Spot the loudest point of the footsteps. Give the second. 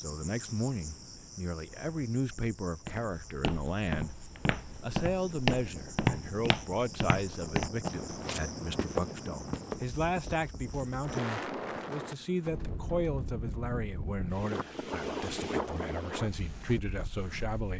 6 s.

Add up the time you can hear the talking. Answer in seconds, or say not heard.
17 s.